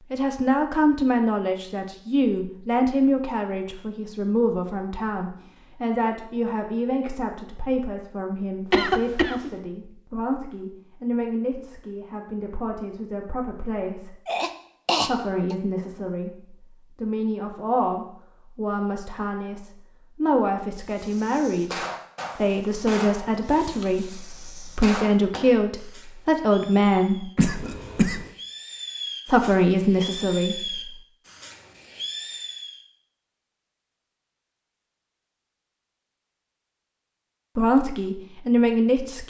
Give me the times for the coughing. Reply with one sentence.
You can hear the coughing from 8.7 to 9.5 s, from 14.2 to 15.6 s and from 27.4 to 28.3 s.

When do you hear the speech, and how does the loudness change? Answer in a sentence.
The speech can be heard from 0.1 to 14.2 s, getting quieter; from 15.1 to 27.3 s, getting louder; briefly from 29.2 to 30.8 s; and briefly from 37.5 to 39.2 s.